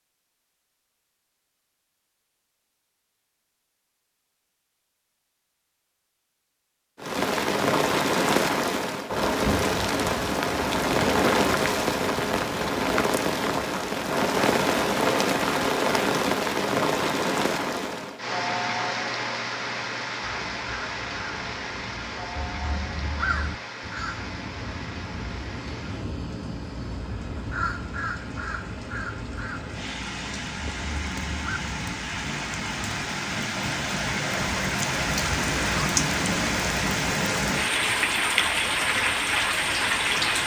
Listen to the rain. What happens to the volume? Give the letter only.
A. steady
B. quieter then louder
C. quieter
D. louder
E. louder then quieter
B.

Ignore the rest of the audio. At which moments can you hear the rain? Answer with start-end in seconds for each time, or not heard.
7.0-40.4.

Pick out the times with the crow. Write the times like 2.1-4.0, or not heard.
20.2-31.6.